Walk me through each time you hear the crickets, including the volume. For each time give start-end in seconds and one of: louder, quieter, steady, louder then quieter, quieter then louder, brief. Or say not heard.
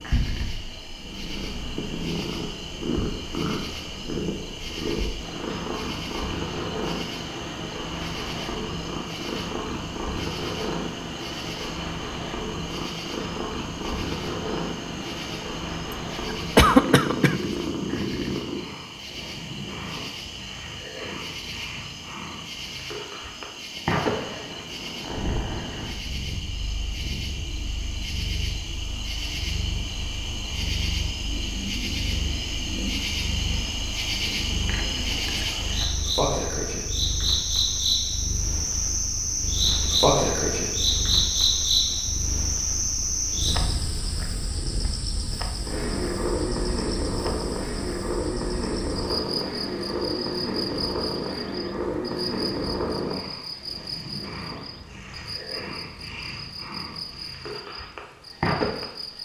0.0-59.1 louder then quieter.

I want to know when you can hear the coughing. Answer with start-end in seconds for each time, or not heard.
16.3-17.4.